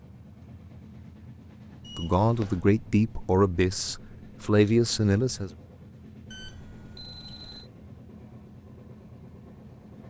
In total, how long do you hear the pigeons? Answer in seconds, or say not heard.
not heard.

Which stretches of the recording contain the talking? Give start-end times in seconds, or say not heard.
1.9-5.5.